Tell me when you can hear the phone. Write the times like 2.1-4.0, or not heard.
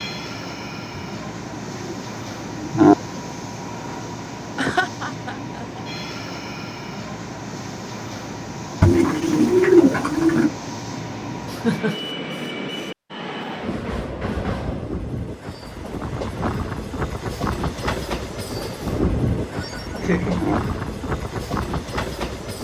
not heard.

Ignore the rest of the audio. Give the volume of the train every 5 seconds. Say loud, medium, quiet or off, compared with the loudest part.
medium, medium, loud, loud, loud.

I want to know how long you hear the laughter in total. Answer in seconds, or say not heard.
3 s.